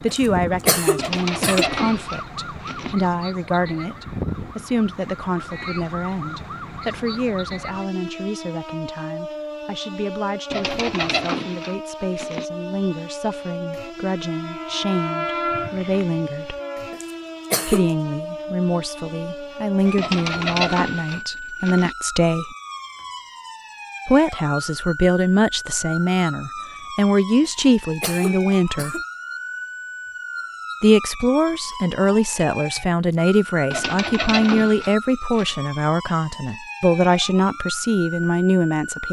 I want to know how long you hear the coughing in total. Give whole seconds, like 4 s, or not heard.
4 s.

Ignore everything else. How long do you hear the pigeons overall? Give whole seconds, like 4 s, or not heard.
8 s.